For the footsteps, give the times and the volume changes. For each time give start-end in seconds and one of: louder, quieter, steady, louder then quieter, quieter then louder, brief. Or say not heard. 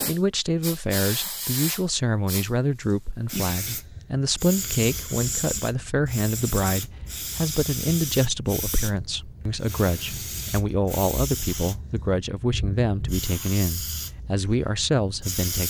not heard.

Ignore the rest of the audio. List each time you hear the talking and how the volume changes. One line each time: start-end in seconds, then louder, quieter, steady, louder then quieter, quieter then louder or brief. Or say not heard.
0.1-15.6 steady.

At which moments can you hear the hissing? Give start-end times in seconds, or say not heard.
0.0-15.6.